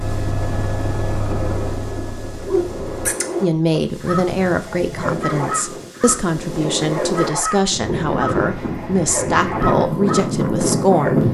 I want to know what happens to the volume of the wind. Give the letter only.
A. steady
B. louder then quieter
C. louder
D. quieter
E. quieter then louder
C.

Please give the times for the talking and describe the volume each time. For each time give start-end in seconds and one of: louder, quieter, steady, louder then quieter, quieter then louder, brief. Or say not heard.
3.4-11.2 steady.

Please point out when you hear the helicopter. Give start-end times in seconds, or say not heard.
0.0-3.1.